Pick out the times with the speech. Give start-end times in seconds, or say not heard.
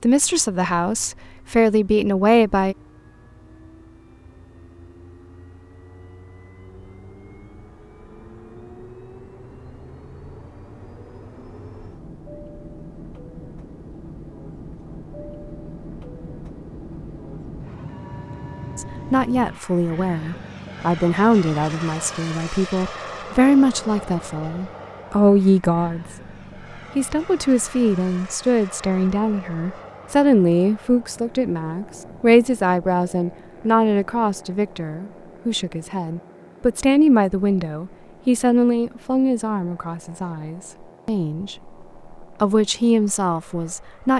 0.0-2.8, 18.8-26.1, 26.9-44.1.